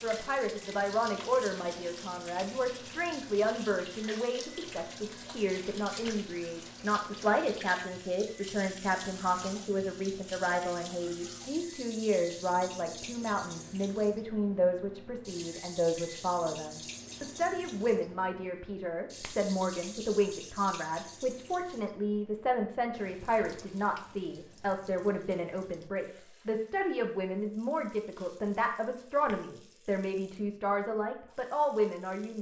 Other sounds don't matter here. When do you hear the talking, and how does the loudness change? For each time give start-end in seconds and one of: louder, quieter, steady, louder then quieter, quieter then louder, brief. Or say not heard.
0.0-32.3 steady.